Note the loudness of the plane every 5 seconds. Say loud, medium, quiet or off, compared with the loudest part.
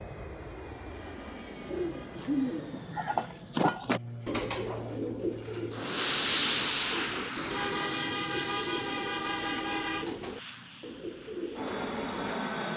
medium, loud, loud.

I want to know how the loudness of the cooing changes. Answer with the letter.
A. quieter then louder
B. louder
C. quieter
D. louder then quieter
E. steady
C.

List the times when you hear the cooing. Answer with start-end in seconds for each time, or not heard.
1.6-12.4.